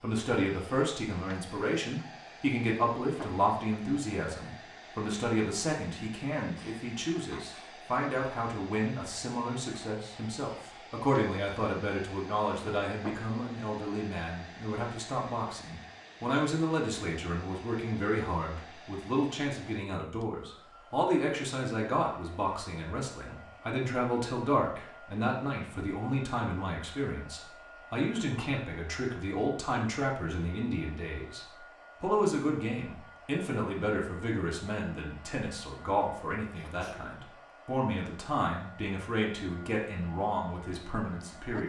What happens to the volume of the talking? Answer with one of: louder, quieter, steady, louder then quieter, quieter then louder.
steady.